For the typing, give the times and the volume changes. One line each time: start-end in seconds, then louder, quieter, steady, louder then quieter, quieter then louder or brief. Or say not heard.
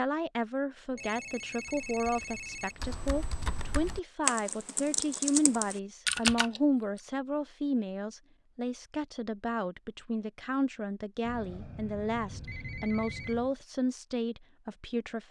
1.6-6.6 louder.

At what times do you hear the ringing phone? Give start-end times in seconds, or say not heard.
0.9-2.8, 11.2-13.6.